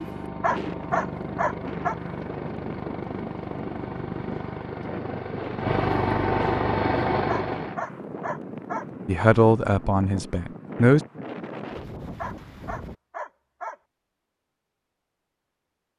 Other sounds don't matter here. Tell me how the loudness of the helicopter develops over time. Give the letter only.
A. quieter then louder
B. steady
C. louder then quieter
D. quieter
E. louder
E.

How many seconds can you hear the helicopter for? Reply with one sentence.
You can hear the helicopter for 8 seconds altogether.